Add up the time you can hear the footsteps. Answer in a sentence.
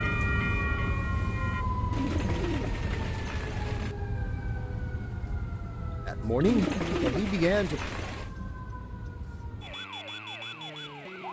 You can't hear the footsteps here.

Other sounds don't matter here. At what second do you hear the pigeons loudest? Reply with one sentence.
The volume of the pigeons peaks at 7 seconds.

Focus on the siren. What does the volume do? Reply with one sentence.
The volume of the siren goes down.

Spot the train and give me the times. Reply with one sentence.
You can hear the train from 0.0 to 1.6 s.